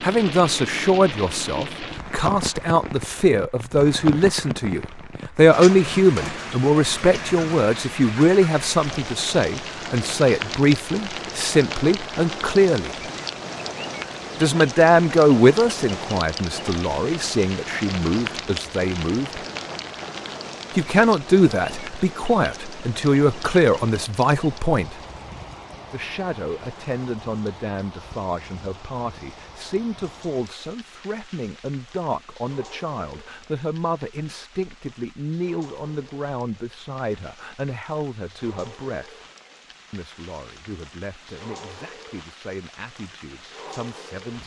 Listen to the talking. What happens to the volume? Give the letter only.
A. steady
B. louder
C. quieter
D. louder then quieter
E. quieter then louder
C.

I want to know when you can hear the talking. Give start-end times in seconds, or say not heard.
0.0-12.9, 14.4-19.4, 20.8-25.0, 25.9-39.1, 39.9-44.4.